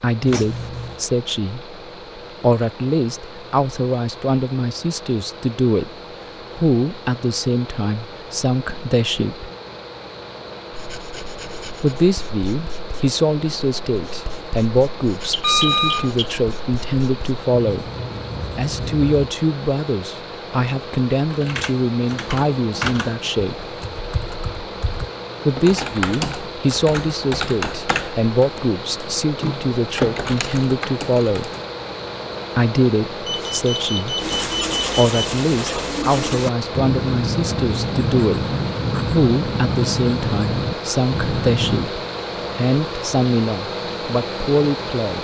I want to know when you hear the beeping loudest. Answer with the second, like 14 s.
16 s.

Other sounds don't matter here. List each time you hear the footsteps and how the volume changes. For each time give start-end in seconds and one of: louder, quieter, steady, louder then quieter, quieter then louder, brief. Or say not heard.
not heard.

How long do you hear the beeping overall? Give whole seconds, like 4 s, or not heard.
4 s.